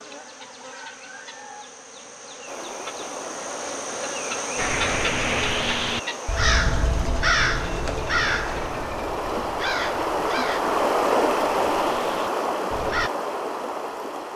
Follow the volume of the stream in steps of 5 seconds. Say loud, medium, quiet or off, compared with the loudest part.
quiet, medium, loud.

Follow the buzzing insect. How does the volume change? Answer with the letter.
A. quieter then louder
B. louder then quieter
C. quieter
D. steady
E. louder
B.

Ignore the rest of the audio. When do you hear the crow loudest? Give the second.
7 s.